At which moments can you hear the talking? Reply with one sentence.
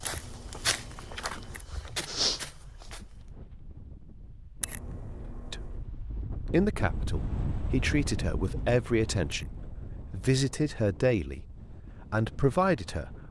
You can hear the talking from 5.5 to 9.5 s and from 10.1 to 13.2 s.